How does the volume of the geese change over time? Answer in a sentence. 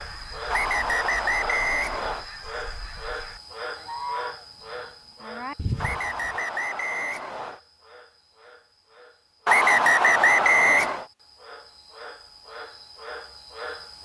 The loudness of the geese goes up.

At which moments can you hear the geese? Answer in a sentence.
The geese can be heard from 0.0 to 6.3 s.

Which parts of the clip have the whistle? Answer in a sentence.
The whistle can be heard from 0.5 to 2.2 s, from 5.8 to 7.6 s and from 9.4 to 11.1 s.